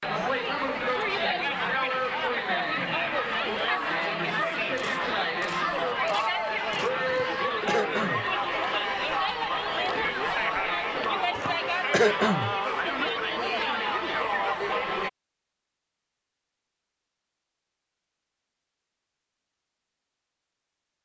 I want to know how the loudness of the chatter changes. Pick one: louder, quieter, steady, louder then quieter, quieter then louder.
steady.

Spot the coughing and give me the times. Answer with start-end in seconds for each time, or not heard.
7.0-8.2, 11.3-12.6.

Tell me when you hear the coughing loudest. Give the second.
12 s.